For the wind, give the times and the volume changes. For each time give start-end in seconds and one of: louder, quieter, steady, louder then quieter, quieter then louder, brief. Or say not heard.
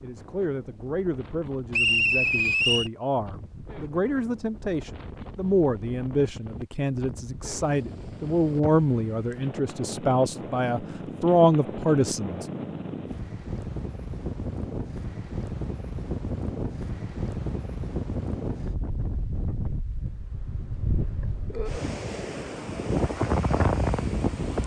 0.0-24.6 louder.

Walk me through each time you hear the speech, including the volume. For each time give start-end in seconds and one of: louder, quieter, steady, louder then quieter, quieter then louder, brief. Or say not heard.
0.0-12.4 louder.